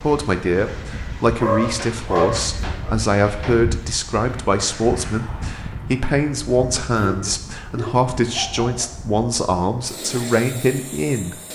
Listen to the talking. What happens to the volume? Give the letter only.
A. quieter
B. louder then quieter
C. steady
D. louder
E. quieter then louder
C.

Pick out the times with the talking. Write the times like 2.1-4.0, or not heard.
0.0-11.3.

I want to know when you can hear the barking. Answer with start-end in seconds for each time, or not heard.
1.4-3.0, 7.0-8.9.